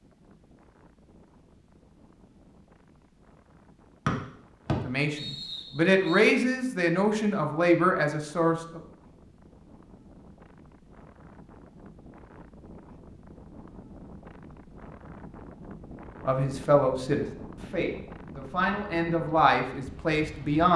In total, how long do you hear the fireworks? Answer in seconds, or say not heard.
not heard.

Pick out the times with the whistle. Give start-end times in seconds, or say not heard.
4.0-6.2.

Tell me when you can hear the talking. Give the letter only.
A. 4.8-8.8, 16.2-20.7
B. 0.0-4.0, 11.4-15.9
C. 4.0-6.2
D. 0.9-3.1
A.